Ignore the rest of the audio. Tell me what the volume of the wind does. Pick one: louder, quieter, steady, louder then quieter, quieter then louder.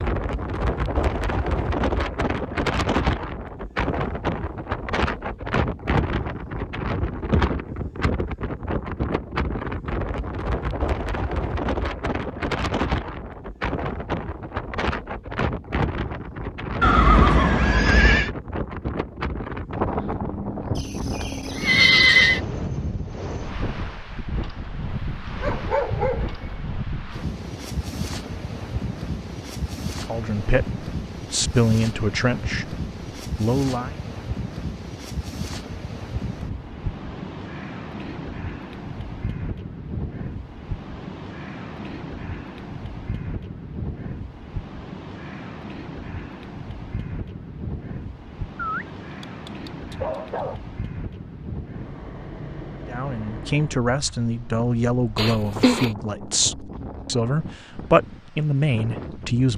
quieter.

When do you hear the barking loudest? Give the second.
26 s.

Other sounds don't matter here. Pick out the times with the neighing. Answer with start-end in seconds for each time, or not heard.
16.8-18.3, 20.8-22.4, 55.1-55.9.